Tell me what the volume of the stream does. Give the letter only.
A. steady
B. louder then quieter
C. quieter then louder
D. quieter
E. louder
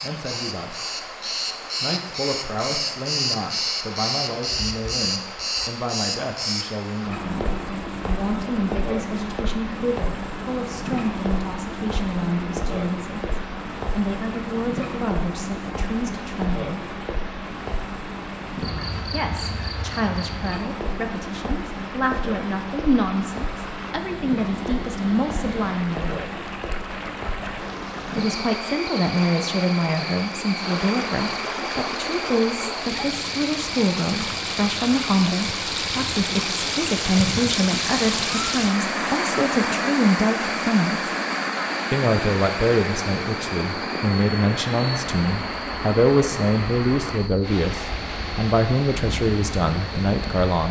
E.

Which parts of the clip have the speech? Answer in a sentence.
The speech can be heard from 0.0 to 1.1 s, from 1.8 to 16.9 s, from 19.1 to 26.2 s, from 28.1 to 41.1 s and from 41.9 to 50.6 s.